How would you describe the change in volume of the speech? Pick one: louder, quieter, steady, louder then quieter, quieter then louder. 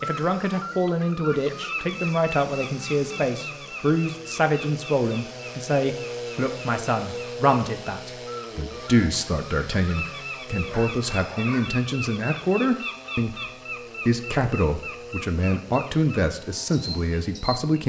steady.